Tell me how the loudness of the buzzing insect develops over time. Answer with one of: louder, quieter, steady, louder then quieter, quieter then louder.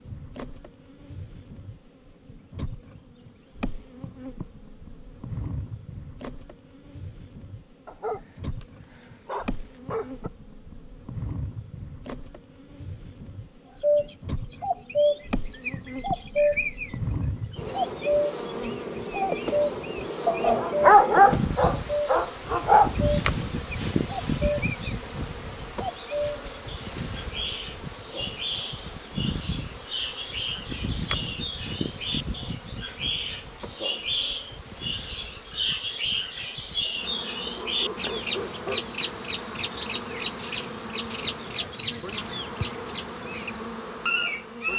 louder then quieter.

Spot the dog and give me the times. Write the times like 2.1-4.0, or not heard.
7.8-10.3, 20.2-22.9, 37.5-38.9.